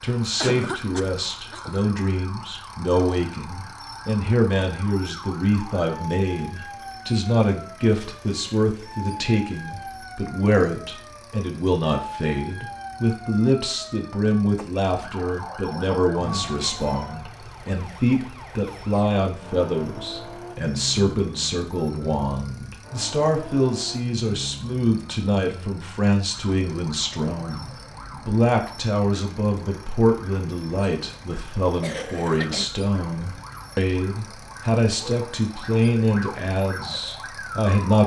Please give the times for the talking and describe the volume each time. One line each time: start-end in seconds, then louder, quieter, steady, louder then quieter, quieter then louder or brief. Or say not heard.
0.0-38.0 steady.